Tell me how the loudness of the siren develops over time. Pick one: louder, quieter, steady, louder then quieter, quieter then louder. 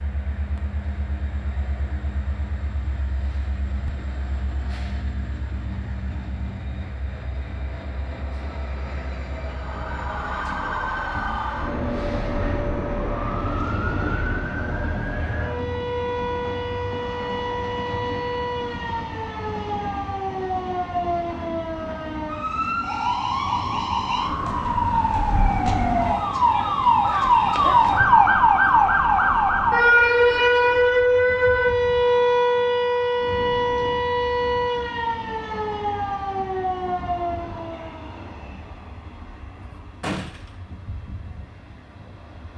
louder then quieter.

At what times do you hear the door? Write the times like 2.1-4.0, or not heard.
40.0-40.5.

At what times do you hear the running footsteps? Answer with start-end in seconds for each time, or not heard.
not heard.